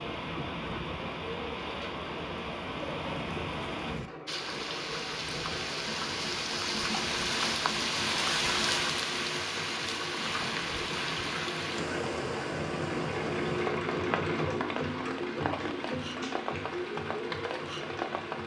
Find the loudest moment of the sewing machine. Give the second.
14 s.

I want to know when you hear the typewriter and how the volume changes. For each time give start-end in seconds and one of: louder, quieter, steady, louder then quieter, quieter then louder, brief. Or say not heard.
not heard.